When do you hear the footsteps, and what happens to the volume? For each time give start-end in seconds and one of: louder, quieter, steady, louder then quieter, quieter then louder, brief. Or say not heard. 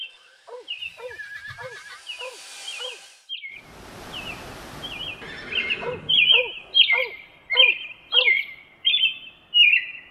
not heard.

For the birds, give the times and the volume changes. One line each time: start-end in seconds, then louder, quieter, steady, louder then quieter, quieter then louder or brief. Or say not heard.
0.0-10.0 louder.